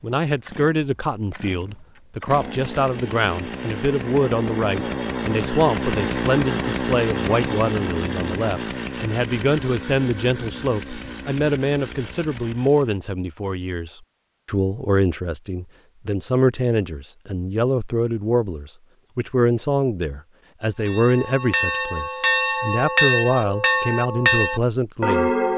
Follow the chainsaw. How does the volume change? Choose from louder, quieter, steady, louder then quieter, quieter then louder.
louder then quieter.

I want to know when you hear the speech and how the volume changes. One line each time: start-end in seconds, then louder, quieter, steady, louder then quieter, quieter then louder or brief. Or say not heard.
0.0-25.3 steady.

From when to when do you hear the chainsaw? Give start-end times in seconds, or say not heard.
0.2-13.0.